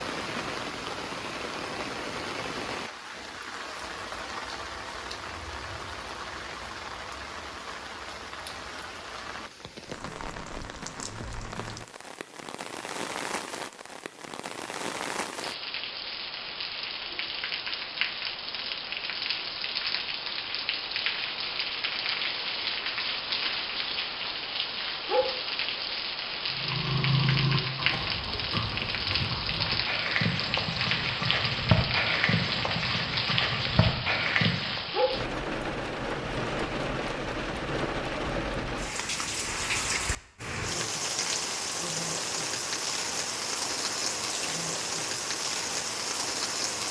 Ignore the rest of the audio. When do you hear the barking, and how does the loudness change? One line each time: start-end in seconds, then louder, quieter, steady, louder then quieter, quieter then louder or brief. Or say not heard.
not heard.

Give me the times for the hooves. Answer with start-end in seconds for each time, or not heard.
26.5-34.9.